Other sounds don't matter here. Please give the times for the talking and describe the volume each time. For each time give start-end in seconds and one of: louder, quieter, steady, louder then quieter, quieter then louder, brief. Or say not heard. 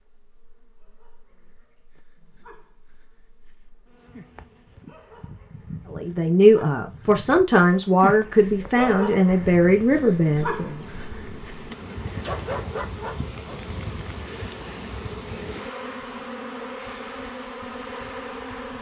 5.9-10.8 steady.